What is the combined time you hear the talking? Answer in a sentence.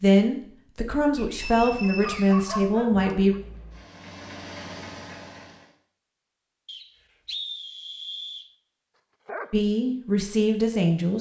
You can hear the talking for 5 seconds altogether.